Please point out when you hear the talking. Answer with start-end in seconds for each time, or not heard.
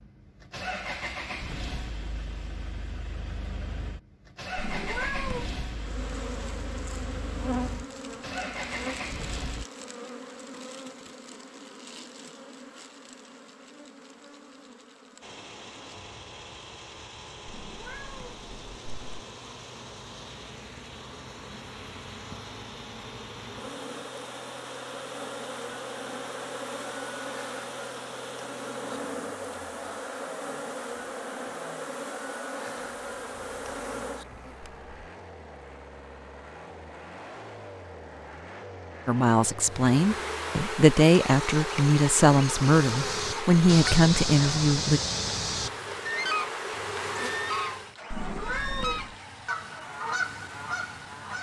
39.0-45.0.